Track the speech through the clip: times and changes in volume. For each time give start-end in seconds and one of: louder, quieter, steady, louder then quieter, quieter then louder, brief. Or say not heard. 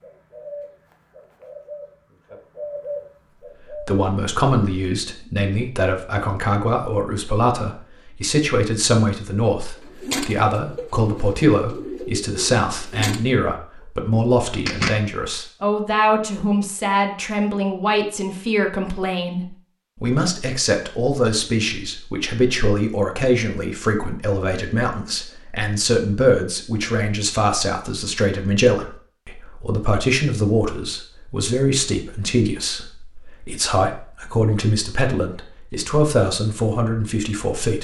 3.7-37.7 steady.